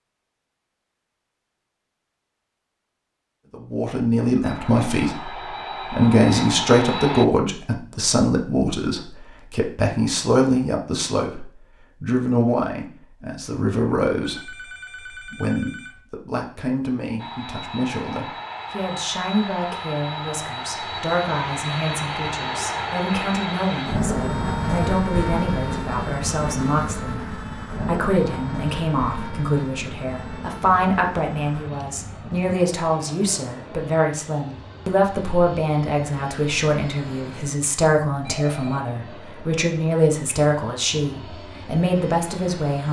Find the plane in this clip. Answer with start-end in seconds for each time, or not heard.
4.4-7.2, 17.1-42.8.